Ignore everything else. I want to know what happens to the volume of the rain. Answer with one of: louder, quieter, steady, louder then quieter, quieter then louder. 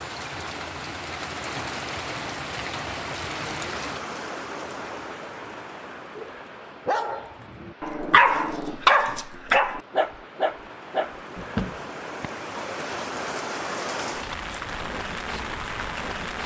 quieter then louder.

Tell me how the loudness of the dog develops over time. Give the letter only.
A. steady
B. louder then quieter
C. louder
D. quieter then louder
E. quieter
B.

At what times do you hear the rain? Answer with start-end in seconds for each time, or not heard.
0.0-16.4.